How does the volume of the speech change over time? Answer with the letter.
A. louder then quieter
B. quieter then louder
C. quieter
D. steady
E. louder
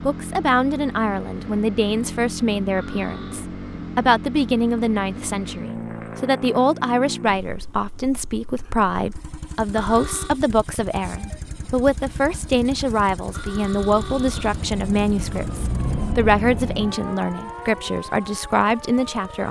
D.